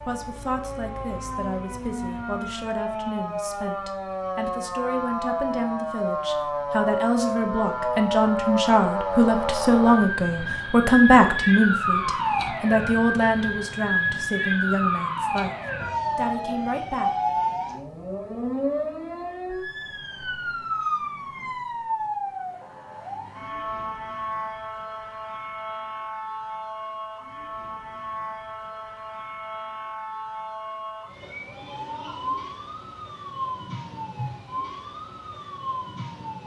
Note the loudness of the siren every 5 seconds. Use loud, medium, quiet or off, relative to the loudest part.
medium, loud, loud, loud, medium, medium, medium, medium.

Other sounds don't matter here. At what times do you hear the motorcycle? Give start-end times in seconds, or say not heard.
not heard.